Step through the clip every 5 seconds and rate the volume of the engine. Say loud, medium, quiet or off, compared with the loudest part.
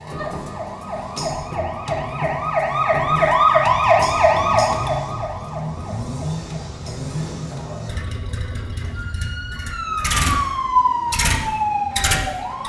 medium, medium, loud.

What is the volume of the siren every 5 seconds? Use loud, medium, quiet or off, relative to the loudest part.
loud, quiet, loud.